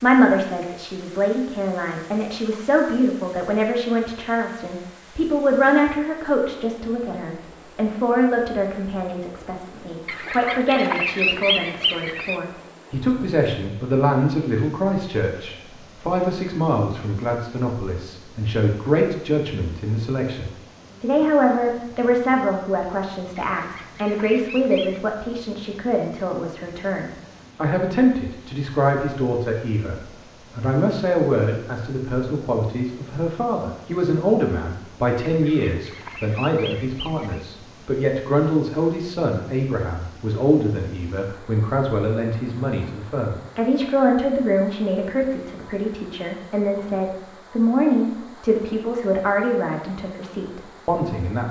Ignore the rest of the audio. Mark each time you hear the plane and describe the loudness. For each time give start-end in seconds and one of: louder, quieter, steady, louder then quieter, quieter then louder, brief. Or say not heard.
not heard.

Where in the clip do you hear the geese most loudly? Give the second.
11 s.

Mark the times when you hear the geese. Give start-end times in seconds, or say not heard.
10.1-12.3, 23.6-25.0, 35.4-37.5.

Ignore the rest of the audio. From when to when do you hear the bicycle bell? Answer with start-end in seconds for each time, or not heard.
not heard.